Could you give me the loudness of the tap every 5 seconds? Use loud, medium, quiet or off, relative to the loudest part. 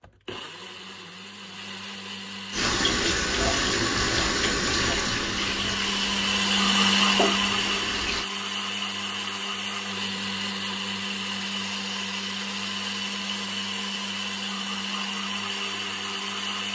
loud, medium, off, off.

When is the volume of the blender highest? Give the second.
7 s.